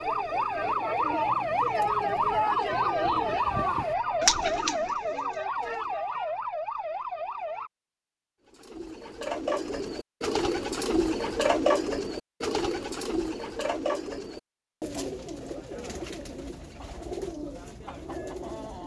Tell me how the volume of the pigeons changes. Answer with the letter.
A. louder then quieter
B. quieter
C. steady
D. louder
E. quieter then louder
A.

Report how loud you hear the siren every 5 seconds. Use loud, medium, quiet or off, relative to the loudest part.
loud, medium, off, off.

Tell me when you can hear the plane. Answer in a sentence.
The plane can't be heard in this clip.